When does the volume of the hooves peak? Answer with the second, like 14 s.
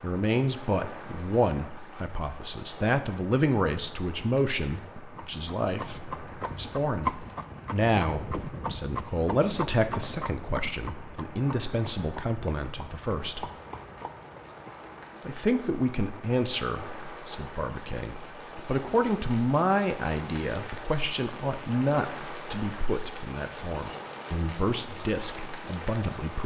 7 s.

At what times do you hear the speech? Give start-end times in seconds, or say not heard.
0.0-13.4, 15.2-26.4.